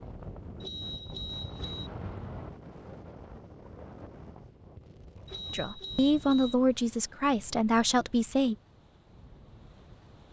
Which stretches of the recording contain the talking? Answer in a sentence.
You can hear the talking from 5.5 to 8.6 s.